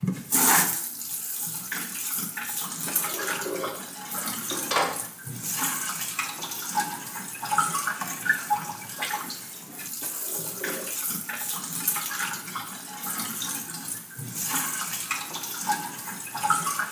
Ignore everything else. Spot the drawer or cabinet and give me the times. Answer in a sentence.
The drawer or cabinet can be heard from 2.9 to 5.0 s and from 10.0 to 11.4 s.